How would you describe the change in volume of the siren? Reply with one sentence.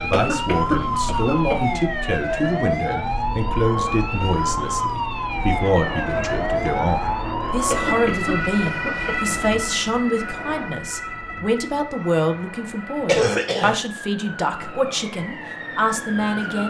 The volume of the siren goes down.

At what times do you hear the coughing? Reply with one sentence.
The coughing can be heard from 0.1 to 1.9 s, from 7.7 to 9.3 s and from 13.1 to 13.8 s.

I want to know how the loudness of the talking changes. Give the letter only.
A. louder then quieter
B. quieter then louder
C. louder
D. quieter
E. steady
E.